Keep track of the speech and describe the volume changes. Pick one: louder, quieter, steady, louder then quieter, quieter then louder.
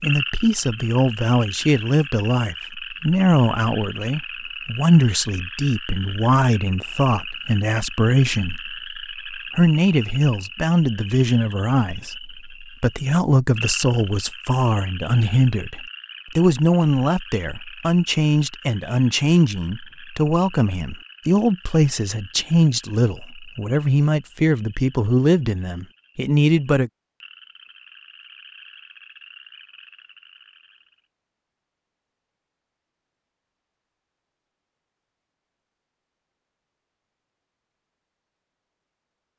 steady.